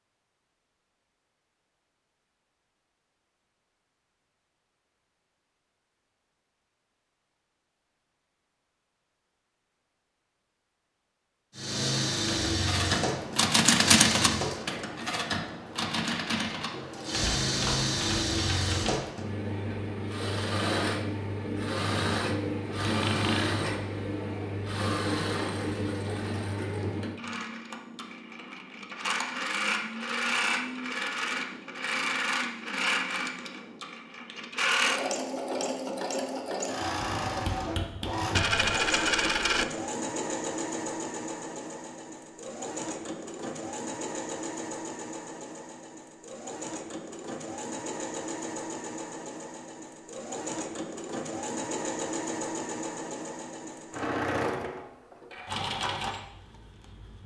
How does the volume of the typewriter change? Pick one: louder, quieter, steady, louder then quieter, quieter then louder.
quieter.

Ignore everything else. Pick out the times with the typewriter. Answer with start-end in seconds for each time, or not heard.
12.3-18.9.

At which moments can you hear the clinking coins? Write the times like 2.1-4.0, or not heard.
22.9-23.6, 38.3-39.6.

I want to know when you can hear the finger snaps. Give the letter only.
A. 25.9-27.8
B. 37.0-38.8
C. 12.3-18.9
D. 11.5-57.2
B.